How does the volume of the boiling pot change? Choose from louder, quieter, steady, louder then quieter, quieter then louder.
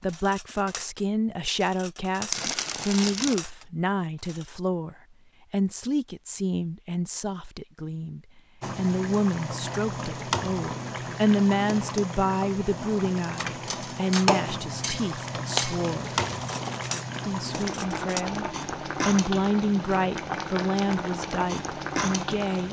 steady.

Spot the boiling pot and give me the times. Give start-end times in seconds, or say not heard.
8.6-22.6.